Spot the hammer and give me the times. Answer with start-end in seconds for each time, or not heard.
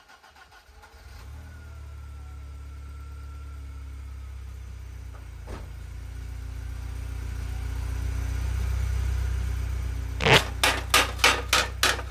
10.3-12.0.